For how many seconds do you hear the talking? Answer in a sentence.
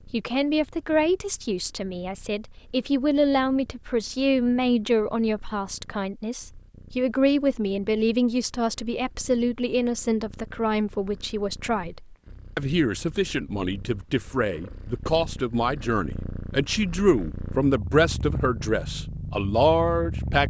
You can hear the talking for 20 seconds altogether.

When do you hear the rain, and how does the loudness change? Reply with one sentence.
The rain can't be heard in this clip.